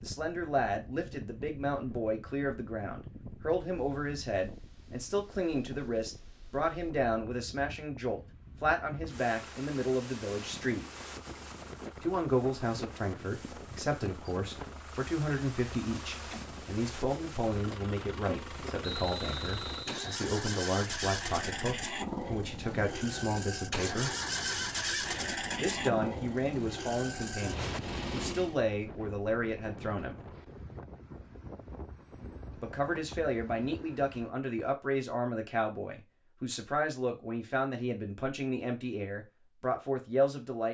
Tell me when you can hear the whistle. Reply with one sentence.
You can hear the whistle from 18.8 to 20.2 s.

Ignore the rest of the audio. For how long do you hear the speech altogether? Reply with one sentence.
You can hear the speech for 36 seconds altogether.